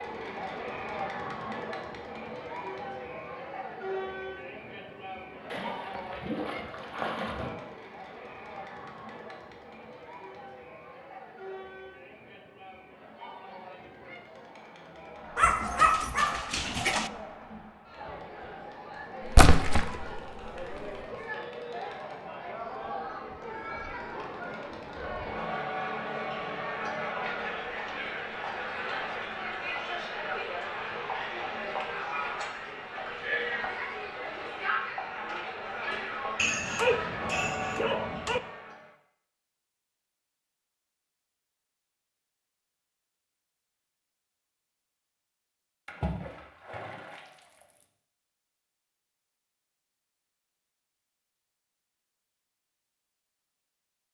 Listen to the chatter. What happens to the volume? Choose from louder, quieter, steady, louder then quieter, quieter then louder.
quieter then louder.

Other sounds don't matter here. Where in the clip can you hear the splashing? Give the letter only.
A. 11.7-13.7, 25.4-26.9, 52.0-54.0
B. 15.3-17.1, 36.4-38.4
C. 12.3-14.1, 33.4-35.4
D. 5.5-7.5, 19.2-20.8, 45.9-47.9
D.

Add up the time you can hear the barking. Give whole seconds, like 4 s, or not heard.
4 s.